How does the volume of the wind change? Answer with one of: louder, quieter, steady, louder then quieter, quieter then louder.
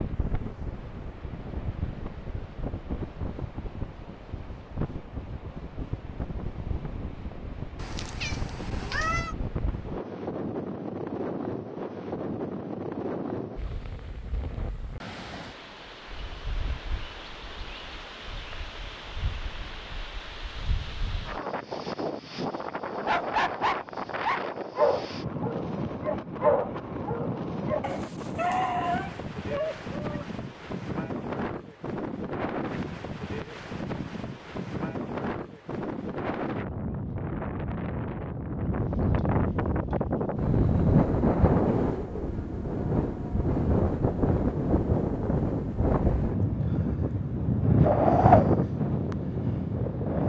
louder.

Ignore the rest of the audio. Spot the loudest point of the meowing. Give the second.
9 s.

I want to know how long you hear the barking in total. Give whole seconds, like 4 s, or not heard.
7 s.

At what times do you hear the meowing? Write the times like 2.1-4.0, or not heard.
7.8-9.3.